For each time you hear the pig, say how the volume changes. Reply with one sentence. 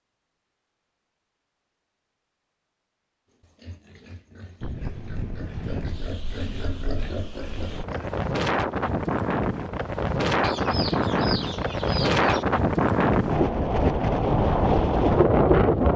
The pig can be heard from 3.4 to 8.2 s, getting louder.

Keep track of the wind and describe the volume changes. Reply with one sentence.
The volume of the wind goes up.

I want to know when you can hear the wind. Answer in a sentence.
You can hear the wind from 4.6 to 15.9 s.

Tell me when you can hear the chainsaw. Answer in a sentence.
You can't hear the chainsaw here.